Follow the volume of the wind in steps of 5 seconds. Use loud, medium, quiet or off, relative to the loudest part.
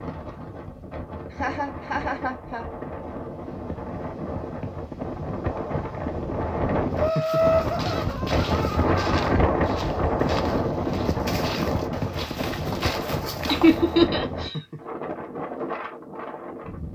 medium, loud, loud, medium.